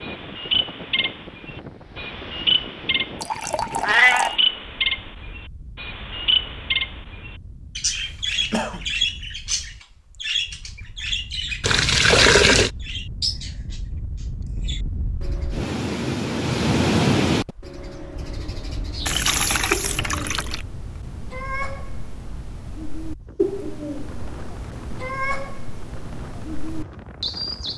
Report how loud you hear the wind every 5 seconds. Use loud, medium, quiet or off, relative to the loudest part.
quiet, quiet, quiet, loud, quiet, quiet.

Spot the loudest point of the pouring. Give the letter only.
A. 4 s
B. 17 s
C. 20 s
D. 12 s
D.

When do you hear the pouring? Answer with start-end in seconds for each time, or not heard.
3.2-4.3, 11.6-12.7, 19.1-20.6.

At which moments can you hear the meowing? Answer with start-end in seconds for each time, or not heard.
3.8-4.3.